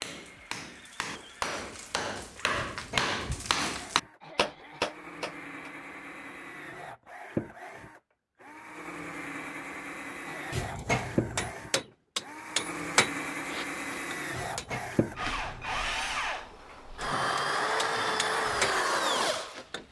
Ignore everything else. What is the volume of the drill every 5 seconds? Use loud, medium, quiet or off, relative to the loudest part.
quiet, medium, medium, loud.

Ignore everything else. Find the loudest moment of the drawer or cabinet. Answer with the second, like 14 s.
11 s.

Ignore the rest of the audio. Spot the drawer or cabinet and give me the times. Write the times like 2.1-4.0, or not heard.
2.5-3.7, 10.5-11.6, 14.3-15.9.